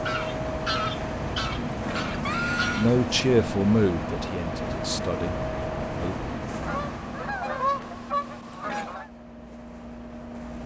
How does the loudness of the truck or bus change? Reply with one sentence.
The volume of the truck or bus goes down.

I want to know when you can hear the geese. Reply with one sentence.
You can hear the geese from 0.1 to 2.9 s and from 6.6 to 9.1 s.